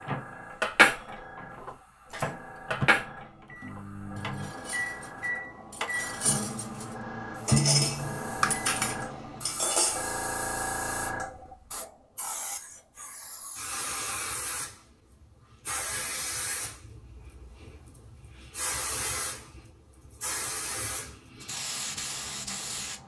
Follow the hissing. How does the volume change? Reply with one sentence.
The loudness of the hissing goes up.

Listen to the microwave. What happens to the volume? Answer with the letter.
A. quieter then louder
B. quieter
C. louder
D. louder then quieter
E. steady
C.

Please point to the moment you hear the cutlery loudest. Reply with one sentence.
The loudest moment of the cutlery is at 1 second.